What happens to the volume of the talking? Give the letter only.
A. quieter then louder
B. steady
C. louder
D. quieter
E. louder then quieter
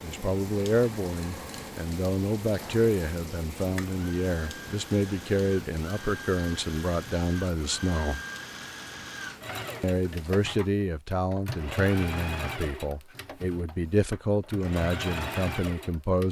B.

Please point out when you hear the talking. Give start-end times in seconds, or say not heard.
0.0-8.2, 9.8-16.2.